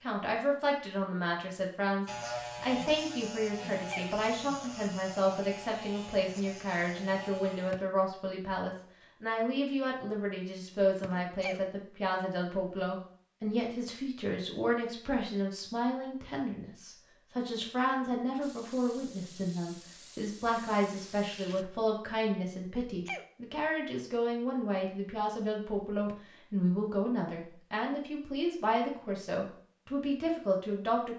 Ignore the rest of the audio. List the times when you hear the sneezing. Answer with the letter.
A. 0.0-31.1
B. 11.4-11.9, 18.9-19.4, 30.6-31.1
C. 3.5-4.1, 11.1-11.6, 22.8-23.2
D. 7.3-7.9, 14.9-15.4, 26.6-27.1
C.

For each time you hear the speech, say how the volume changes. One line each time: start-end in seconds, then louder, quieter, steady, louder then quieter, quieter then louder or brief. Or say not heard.
0.0-31.1 steady.